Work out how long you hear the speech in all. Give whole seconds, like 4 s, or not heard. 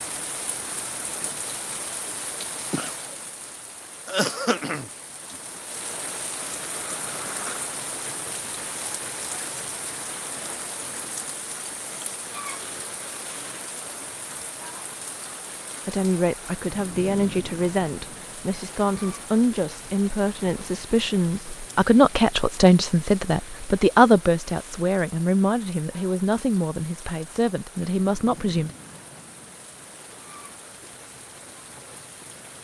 13 s.